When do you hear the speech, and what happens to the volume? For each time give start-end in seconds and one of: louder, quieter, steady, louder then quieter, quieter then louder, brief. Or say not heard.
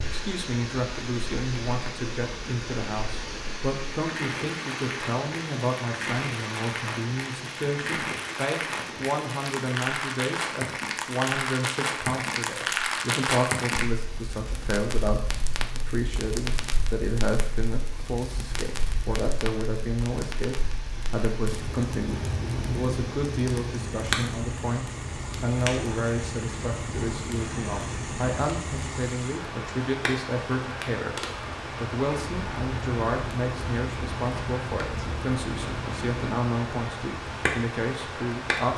0.0-38.7 steady.